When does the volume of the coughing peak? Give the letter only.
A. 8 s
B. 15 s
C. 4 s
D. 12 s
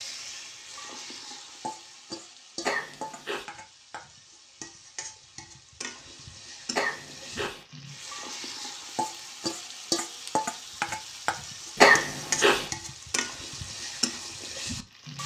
D.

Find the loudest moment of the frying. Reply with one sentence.
The loudest moment of the frying is at 10 seconds.